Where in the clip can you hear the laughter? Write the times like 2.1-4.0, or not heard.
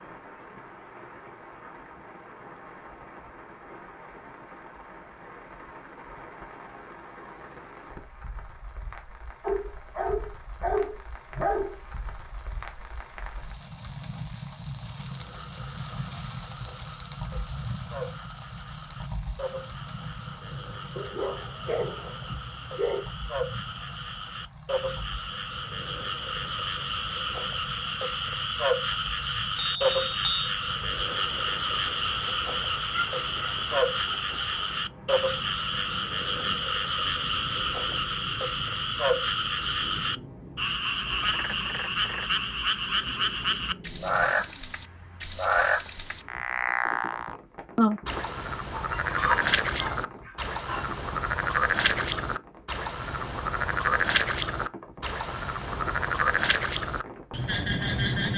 not heard.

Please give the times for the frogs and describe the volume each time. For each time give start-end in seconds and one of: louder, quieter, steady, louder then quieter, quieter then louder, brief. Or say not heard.
14.9-58.3 louder.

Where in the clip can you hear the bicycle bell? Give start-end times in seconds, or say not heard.
29.6-30.5.